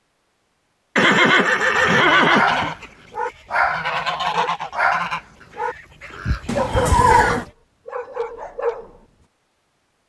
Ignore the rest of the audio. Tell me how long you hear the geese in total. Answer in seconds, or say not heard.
6 s.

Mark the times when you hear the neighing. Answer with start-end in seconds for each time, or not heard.
0.9-2.8, 6.5-7.5.